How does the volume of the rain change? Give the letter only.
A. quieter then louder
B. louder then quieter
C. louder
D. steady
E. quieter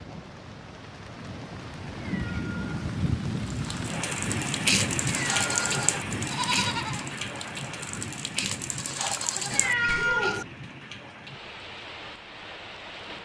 B.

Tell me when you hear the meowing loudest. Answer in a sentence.
The loudest moment of the meowing is at 10 seconds.